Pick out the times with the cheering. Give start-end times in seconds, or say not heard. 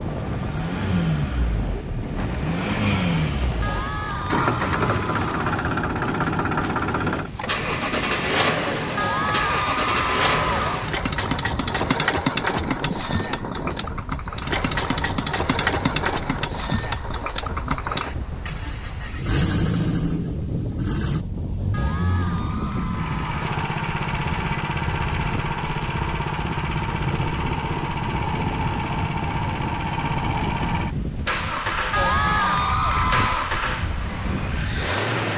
3.6-5.6, 8.9-10.9, 21.7-23.5, 31.9-33.5.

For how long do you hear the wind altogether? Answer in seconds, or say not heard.
35 s.